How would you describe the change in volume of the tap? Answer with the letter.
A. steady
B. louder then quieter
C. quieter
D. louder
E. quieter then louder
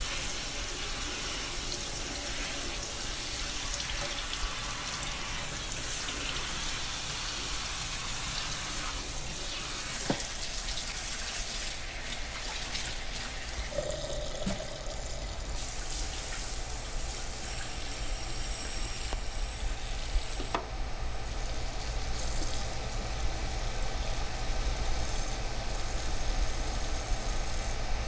C.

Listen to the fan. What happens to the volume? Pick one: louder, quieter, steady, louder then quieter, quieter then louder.
louder.